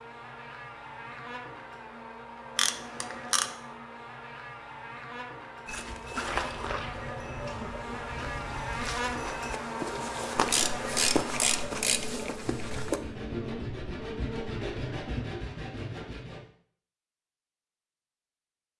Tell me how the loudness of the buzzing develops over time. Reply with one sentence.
The loudness of the buzzing goes up, then down.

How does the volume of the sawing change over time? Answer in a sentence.
The volume of the sawing goes up.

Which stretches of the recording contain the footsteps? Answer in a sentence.
The footsteps can be heard from 5.7 to 13.0 s.